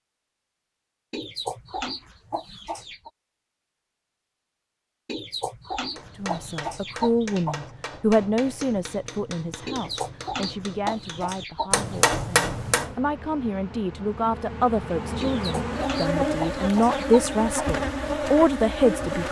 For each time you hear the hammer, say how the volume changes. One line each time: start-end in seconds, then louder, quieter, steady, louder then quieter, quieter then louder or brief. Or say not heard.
6.0-12.9 louder.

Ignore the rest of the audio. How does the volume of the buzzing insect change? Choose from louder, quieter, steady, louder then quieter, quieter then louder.
louder.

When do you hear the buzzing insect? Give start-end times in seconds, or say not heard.
12.5-19.2.